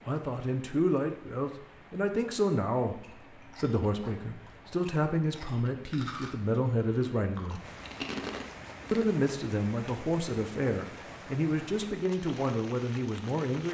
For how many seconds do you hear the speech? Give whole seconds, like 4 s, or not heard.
12 s.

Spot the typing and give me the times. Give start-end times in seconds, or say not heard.
not heard.